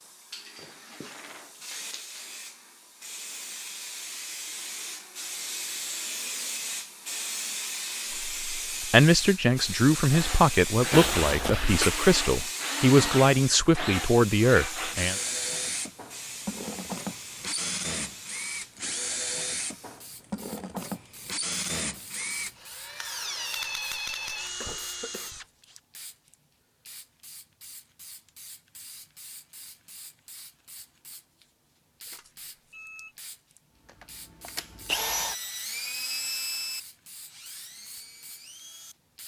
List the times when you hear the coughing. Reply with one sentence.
You can hear the coughing from 10.9 to 11.9 s and from 24.4 to 25.4 s.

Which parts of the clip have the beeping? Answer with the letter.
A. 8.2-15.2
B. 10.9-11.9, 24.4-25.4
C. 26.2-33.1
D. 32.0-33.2
D.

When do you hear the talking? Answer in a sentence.
The talking can be heard from 8.2 to 15.2 s.